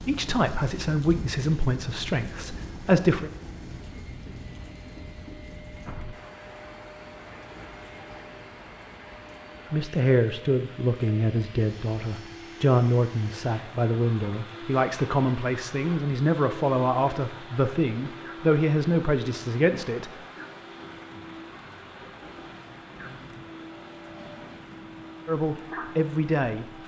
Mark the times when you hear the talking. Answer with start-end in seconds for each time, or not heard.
0.1-3.3, 9.7-20.1, 25.2-26.8.